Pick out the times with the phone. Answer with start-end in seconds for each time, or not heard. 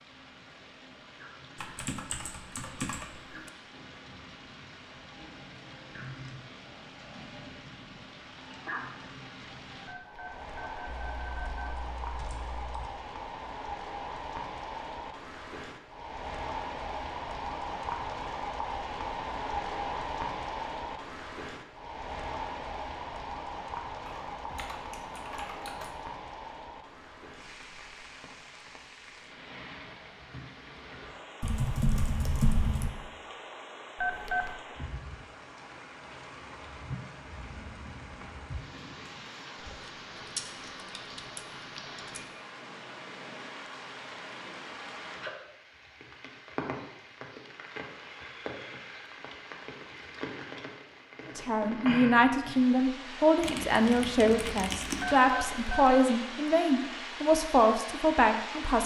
9.8-11.8, 34.0-34.6, 55.0-56.2.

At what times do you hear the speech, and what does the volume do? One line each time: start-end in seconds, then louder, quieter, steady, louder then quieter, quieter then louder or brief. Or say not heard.
51.2-58.8 steady.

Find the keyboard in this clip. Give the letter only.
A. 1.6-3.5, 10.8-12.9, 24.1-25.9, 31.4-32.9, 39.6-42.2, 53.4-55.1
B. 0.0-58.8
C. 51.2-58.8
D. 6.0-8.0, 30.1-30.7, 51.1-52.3
A.